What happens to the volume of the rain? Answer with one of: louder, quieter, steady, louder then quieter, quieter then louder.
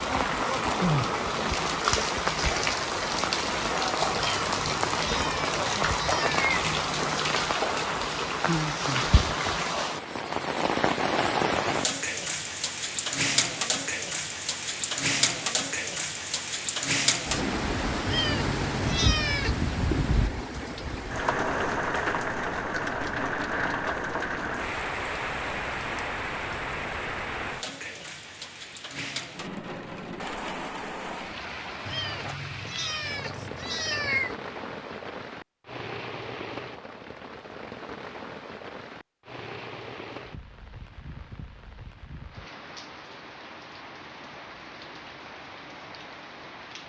quieter.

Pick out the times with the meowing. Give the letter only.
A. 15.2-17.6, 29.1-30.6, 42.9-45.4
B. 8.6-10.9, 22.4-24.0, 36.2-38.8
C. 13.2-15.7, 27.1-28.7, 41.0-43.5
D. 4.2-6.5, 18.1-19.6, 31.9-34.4
D.